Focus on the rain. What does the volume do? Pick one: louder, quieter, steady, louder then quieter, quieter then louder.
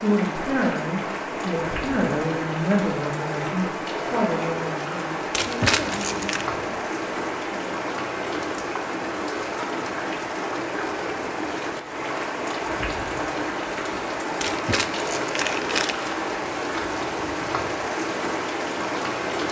steady.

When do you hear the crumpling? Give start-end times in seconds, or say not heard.
5.3-6.5, 14.4-16.1.